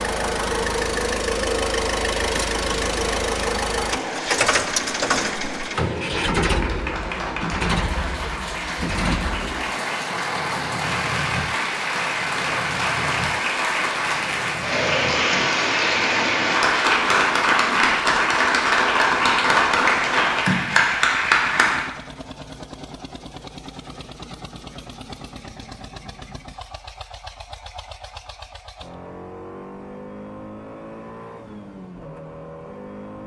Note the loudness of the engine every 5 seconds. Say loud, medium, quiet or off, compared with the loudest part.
loud, loud, medium, quiet, quiet, quiet, quiet.